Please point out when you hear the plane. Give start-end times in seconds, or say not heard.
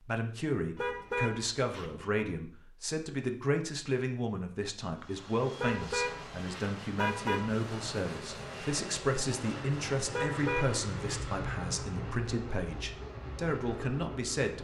4.9-14.5.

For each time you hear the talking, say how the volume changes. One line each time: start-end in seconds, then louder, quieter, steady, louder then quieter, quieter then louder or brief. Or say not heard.
0.0-14.5 steady.